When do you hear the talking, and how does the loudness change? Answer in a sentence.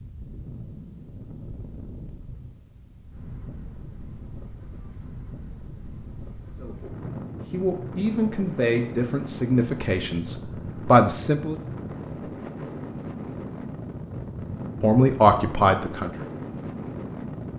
You can hear the talking from 6.6 to 11.6 s, getting louder; and briefly from 14.8 to 16.1 s.